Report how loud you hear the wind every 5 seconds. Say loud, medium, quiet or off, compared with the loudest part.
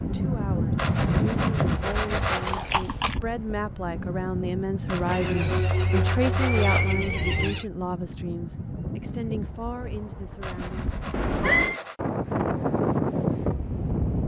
loud, medium, loud.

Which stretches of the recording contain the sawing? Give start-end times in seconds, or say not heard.
0.8-2.6, 4.8-7.0, 10.4-12.0.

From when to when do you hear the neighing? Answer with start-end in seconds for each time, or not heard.
2.5-3.2, 5.1-7.7, 11.1-11.8.